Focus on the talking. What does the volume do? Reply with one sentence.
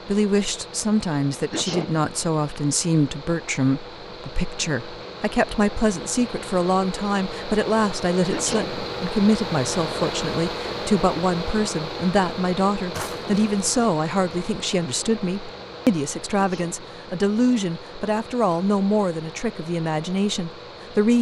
The loudness of the talking stays about the same.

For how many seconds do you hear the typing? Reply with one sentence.
The typing can't be heard in this clip.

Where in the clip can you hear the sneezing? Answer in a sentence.
The sneezing can be heard from 1.5 to 2.1 s, from 8.3 to 8.9 s and from 16.4 to 16.9 s.